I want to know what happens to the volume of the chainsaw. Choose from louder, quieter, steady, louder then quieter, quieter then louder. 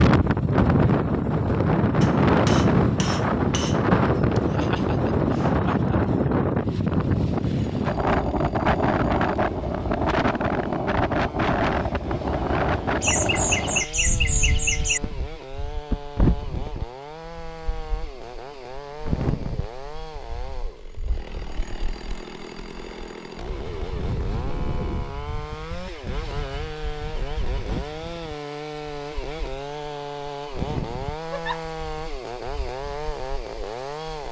louder.